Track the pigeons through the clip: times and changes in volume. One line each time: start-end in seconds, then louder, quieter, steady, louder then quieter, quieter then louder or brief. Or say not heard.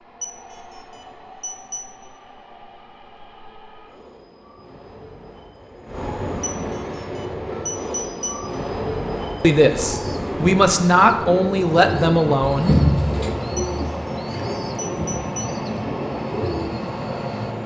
9.9-16.8 louder then quieter.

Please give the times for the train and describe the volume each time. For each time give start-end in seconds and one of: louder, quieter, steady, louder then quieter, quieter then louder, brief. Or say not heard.
0.0-17.6 louder.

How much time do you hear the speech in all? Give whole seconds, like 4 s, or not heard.
3 s.